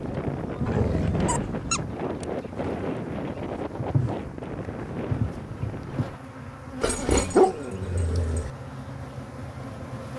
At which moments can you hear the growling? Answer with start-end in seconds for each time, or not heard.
0.7-1.9, 6.8-8.5.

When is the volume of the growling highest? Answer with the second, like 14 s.
7 s.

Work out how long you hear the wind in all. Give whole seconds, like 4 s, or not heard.
6 s.